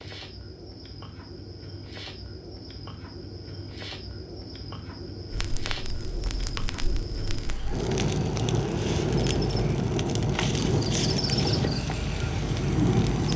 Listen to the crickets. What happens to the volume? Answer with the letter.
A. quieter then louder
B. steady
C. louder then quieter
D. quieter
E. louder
E.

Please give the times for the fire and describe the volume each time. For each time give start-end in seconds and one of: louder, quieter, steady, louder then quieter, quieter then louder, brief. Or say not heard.
5.3-13.3 louder.